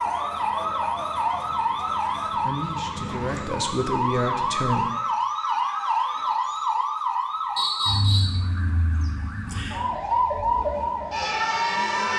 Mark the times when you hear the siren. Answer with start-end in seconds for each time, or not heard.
0.0-12.1.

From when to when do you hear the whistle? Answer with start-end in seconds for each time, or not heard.
7.5-8.4.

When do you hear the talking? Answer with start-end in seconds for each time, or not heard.
2.2-4.8.